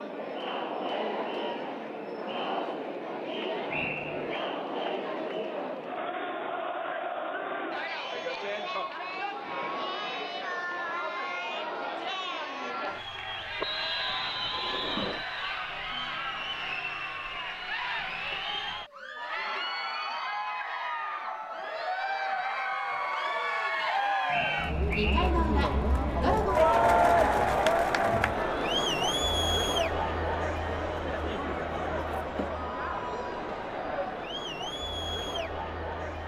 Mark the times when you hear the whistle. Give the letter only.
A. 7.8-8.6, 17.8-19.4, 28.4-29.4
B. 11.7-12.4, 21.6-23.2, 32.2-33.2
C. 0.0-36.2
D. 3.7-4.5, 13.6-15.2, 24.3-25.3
D.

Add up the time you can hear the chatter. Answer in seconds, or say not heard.
36 s.